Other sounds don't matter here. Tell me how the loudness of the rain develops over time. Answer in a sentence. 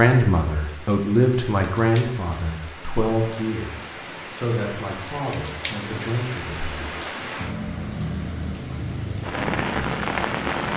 The loudness of the rain goes up.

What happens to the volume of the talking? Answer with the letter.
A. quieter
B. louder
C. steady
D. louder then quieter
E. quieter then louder
A.